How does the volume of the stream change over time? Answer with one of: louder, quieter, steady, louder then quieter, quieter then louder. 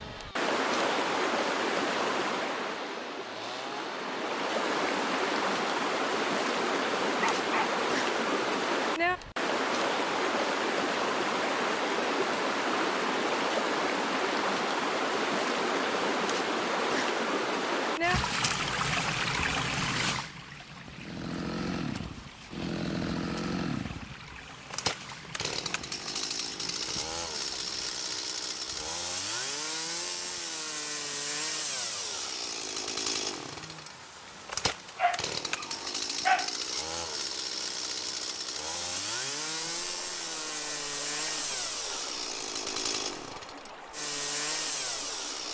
quieter.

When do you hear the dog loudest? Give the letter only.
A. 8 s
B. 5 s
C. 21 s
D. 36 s
D.